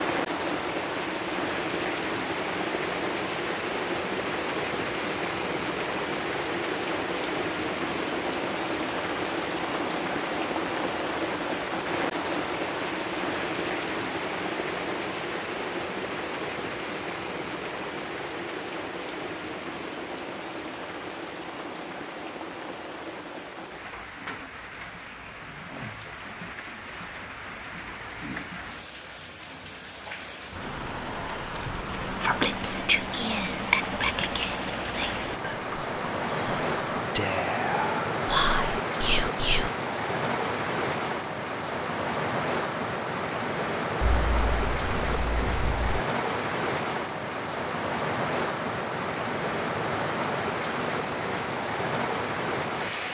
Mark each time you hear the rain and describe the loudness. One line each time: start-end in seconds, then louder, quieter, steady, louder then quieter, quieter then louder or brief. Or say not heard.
0.0-53.0 quieter then louder.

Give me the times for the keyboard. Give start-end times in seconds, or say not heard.
44.0-46.0.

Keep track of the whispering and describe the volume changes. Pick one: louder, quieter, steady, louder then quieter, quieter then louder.
quieter then louder.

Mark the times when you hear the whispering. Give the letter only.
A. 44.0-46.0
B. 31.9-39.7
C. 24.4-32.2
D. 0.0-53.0
B.